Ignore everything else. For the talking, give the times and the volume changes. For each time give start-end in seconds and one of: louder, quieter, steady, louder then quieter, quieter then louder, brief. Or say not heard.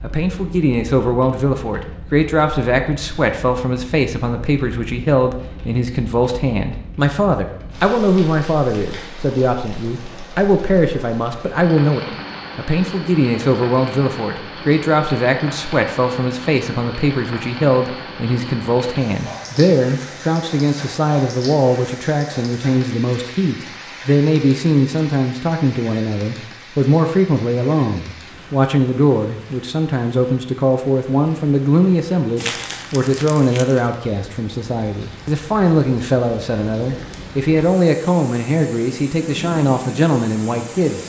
0.0-41.0 steady.